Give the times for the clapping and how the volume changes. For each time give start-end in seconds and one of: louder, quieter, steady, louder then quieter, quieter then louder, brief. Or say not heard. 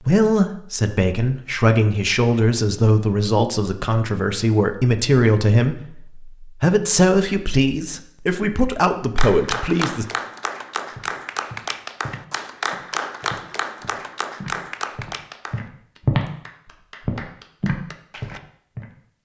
9.2-18.4 quieter.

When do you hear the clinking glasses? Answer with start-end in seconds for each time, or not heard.
not heard.